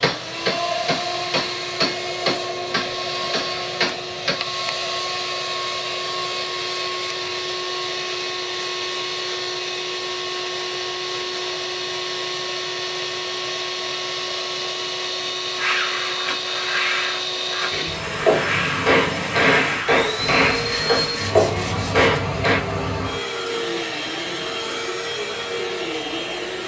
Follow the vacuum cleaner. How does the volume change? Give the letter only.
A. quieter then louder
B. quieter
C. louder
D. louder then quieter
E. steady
E.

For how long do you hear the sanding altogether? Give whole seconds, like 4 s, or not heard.
7 s.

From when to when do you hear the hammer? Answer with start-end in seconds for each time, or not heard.
0.0-4.3, 17.7-22.6.